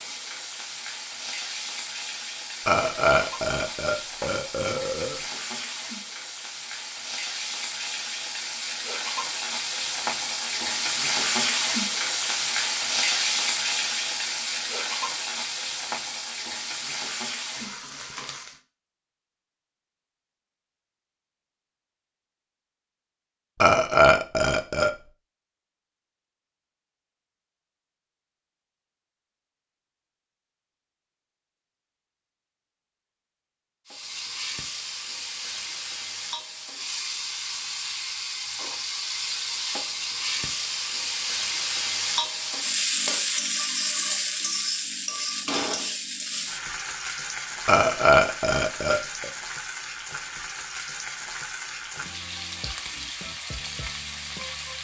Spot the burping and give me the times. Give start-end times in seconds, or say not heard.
2.6-5.2, 23.6-24.9, 47.6-49.3.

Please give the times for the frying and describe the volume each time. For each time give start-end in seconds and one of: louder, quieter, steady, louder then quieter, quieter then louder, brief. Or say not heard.
0.0-18.6 louder then quieter
33.9-54.7 louder then quieter.